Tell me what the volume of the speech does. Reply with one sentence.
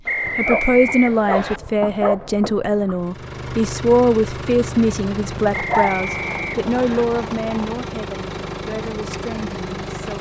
The loudness of the speech goes down.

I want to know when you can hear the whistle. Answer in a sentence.
You can hear the whistle from 0.1 to 1.6 s and from 5.5 to 7.0 s.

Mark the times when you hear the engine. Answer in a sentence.
The engine can be heard from 3.0 to 10.1 s.